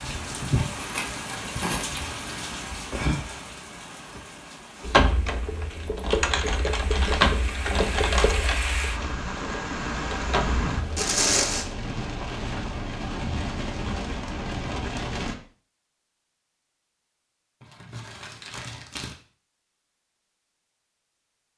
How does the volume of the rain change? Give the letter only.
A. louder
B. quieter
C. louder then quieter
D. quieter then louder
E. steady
D.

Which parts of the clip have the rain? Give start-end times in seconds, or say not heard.
0.0-15.3.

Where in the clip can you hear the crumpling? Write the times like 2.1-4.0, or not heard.
0.6-2.4, 10.9-11.7, 17.6-19.1.